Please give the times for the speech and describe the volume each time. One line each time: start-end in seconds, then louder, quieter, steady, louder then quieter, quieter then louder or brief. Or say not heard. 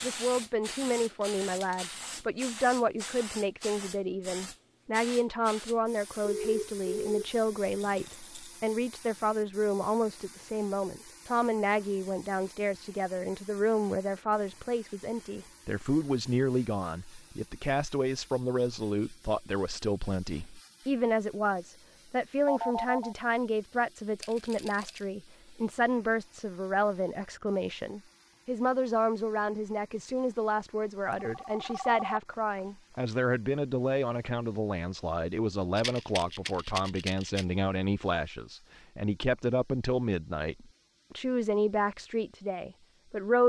0.0-43.4 steady.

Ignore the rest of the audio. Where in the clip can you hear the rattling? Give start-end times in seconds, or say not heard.
7.8-8.6, 24.2-25.1, 35.8-37.5.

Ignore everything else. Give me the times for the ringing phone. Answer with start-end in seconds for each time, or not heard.
6.2-7.3, 22.4-23.1, 31.1-32.4.